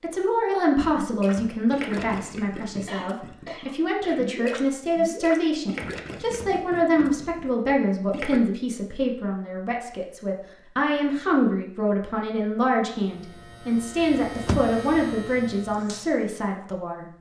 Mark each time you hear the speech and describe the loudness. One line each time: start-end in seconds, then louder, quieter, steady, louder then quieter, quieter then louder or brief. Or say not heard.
0.0-17.1 steady.